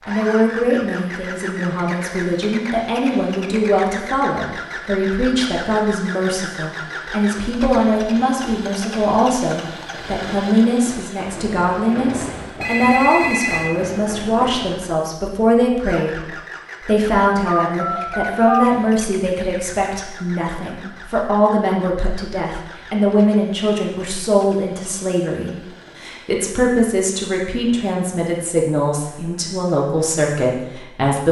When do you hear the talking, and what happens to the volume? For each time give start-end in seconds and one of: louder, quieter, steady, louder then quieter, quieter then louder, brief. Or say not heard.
0.1-31.2 steady.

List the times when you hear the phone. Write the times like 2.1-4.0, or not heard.
12.6-13.8, 17.6-18.6.